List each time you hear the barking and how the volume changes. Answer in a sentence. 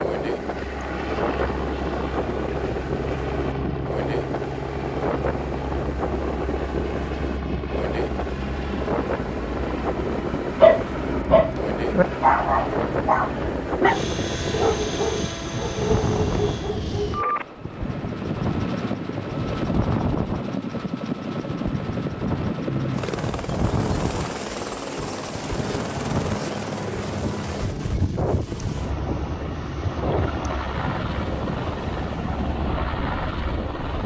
You can hear the barking from 10.6 to 17.4 s, getting quieter.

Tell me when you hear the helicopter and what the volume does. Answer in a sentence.
The helicopter can be heard from 0.0 to 34.0 s, at a steady volume.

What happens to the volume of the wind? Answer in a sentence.
The loudness of the wind stays about the same.